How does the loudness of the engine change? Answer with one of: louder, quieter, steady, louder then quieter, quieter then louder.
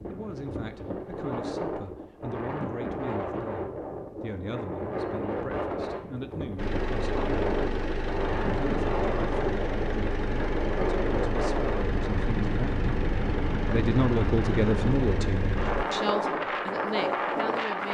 steady.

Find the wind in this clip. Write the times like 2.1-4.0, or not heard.
0.0-17.9.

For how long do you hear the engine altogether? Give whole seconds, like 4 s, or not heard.
9 s.